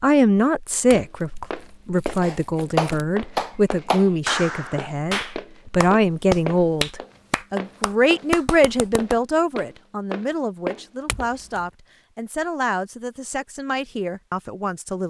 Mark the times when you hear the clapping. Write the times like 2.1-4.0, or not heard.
2.2-9.2.